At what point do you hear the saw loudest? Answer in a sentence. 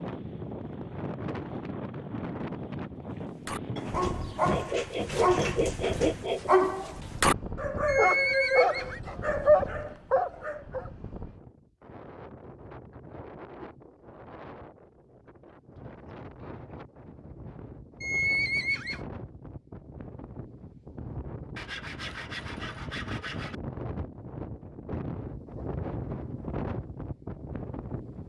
The loudest moment of the saw is at 6 seconds.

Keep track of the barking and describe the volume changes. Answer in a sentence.
The volume of the barking goes up.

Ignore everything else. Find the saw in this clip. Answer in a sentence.
You can hear the saw from 4.5 to 6.5 s and from 21.6 to 23.6 s.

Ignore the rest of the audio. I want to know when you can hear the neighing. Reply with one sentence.
The neighing can be heard from 7.8 to 9.0 s and from 18.0 to 19.0 s.